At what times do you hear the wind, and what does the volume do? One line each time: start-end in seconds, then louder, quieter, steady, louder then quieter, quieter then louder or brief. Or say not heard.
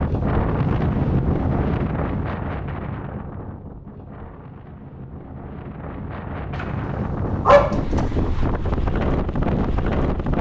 0.0-10.3 quieter then louder.